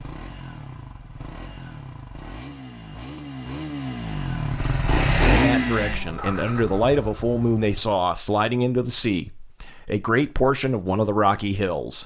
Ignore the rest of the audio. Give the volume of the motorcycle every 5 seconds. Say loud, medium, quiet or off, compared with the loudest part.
medium, loud, off.